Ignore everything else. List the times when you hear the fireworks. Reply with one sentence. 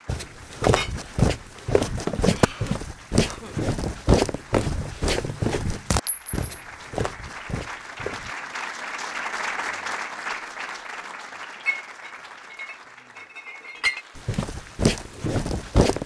The fireworks can't be heard in this clip.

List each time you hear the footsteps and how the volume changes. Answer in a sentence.
The footsteps can be heard from 0.1 to 8.3 s, getting quieter; and briefly from 14.2 to 16.0 s.